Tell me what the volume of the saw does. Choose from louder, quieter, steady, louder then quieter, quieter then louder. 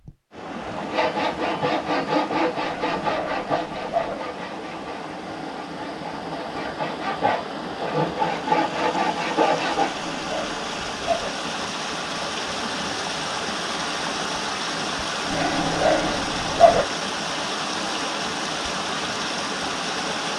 quieter then louder.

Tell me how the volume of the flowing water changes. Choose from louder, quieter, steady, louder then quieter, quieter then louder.
louder.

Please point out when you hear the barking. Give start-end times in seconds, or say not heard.
2.7-4.2, 9.9-11.3, 15.3-16.9.